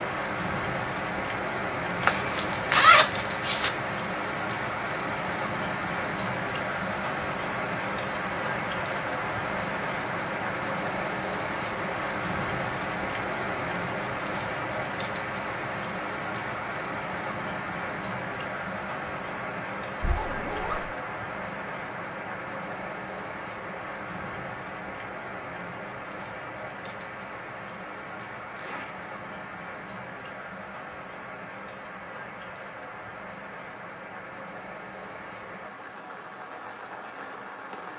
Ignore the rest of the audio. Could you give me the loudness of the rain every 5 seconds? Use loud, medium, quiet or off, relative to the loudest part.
loud, loud, loud, loud, medium, medium, medium, medium.